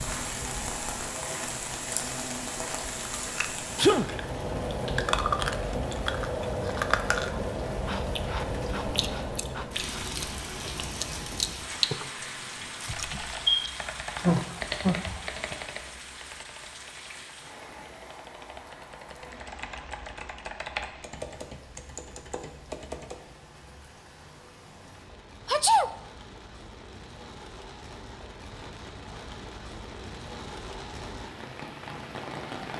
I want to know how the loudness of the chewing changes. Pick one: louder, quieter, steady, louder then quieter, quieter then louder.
quieter then louder.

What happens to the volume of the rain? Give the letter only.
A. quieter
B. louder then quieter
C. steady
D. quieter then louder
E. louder
D.